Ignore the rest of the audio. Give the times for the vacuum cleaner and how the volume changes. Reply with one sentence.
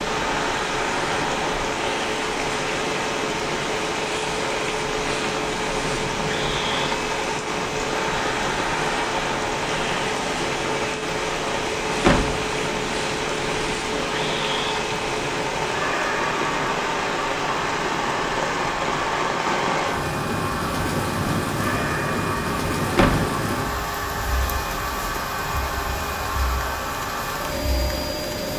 You can hear the vacuum cleaner from 0.0 to 28.5 s, at a steady volume.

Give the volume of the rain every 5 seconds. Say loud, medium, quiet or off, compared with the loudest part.
loud, loud, loud, loud, loud, medium.